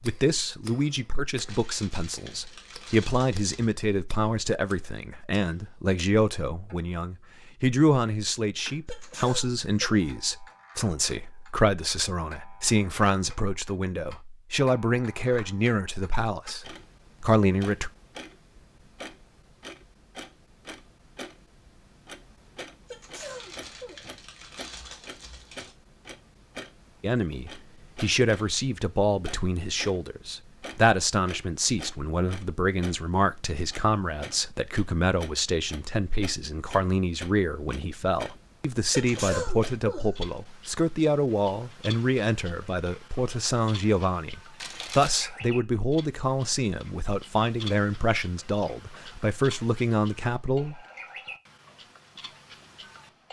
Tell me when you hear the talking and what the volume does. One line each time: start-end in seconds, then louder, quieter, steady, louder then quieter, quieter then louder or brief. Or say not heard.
0.0-17.9 steady
27.0-50.8 steady.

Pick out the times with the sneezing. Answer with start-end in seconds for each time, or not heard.
8.8-10.1, 22.9-24.0, 38.9-40.2.